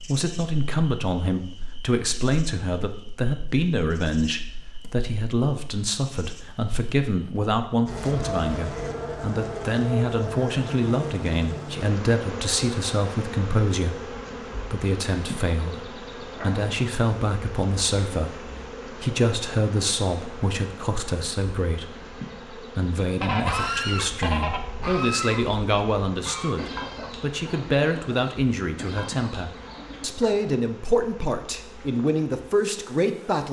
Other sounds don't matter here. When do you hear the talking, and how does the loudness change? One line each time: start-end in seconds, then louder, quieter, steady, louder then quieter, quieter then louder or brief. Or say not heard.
0.0-33.4 steady.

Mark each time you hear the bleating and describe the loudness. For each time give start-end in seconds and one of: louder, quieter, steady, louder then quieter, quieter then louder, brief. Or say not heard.
not heard.